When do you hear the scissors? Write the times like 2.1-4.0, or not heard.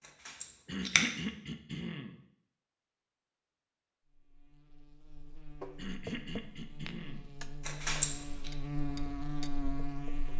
0.2-1.1, 7.6-8.5.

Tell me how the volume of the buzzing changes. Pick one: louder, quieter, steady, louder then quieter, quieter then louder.
louder.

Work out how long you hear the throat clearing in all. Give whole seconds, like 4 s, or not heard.
3 s.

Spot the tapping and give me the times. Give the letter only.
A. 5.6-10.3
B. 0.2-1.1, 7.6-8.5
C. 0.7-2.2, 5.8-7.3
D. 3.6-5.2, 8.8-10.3
A.